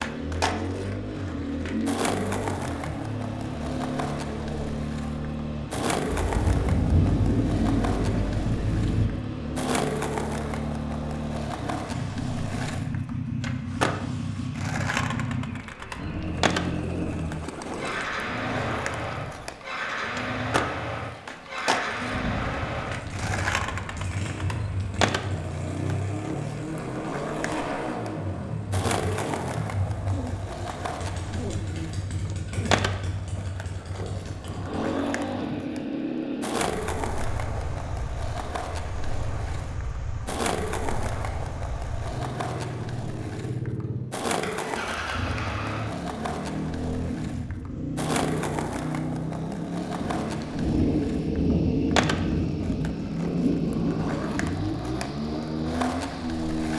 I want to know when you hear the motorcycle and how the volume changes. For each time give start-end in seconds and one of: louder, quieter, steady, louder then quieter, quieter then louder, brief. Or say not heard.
0.0-56.7 steady.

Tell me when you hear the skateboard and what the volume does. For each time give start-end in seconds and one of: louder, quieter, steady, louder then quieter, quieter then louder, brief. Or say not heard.
0.0-56.7 steady.